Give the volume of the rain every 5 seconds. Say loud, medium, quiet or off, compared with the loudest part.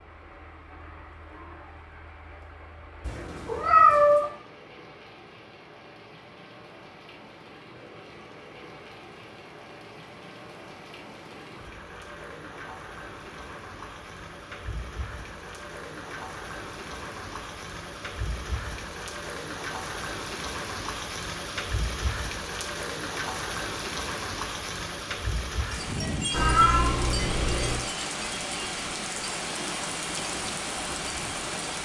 quiet, quiet, medium, medium, loud, loud, loud.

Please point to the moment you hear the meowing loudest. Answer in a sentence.
The volume of the meowing peaks at 4 seconds.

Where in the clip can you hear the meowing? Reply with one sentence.
The meowing can be heard from 3.0 to 4.3 s and from 26.3 to 27.8 s.